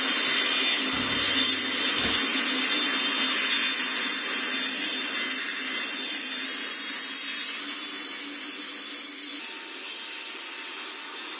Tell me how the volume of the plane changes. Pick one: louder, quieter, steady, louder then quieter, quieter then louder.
quieter.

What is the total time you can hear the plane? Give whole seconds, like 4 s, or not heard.
11 s.